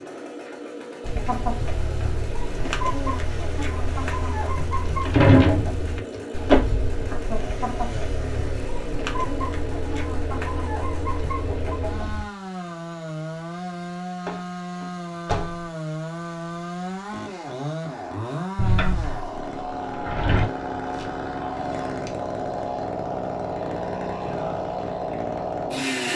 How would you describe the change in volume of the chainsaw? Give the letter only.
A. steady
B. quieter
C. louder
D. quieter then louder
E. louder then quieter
C.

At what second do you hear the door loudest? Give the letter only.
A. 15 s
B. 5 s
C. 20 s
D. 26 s
B.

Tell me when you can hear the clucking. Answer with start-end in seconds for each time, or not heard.
1.0-12.2.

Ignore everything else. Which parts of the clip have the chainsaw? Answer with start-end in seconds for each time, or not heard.
0.0-26.1.